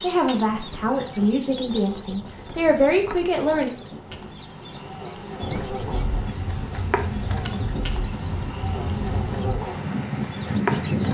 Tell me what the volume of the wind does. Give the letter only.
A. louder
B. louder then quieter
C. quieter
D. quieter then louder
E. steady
A.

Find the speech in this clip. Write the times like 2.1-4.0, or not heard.
0.0-3.7.